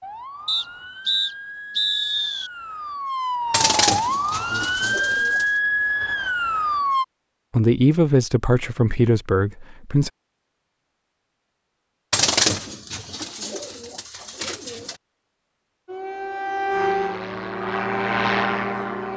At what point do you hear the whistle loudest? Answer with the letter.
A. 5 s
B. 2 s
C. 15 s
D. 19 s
B.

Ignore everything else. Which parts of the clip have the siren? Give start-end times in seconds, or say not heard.
0.0-7.0, 15.8-19.1.